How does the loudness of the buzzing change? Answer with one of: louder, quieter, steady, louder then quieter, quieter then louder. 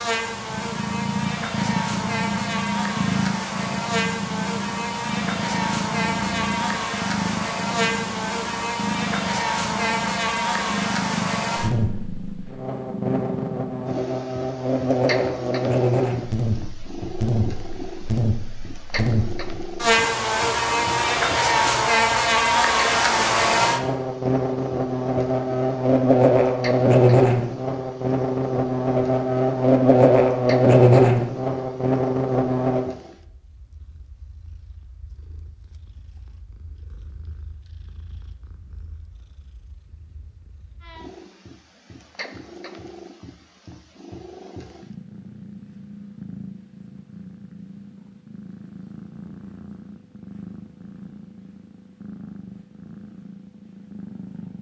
louder.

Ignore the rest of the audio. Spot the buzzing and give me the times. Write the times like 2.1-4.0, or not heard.
0.0-33.0.